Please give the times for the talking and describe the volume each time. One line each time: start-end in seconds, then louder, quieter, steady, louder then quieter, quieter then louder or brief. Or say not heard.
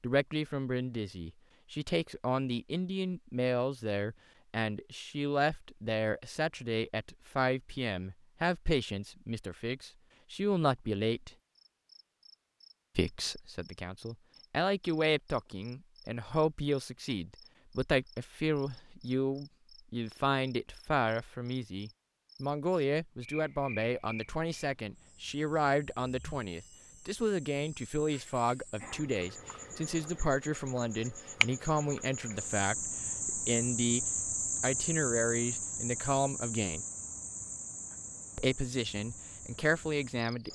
0.0-11.3 steady
12.9-36.9 steady
38.4-40.5 brief.